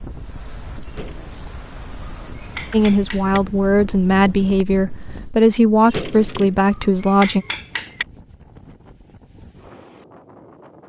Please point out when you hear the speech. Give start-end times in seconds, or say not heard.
2.7-7.5.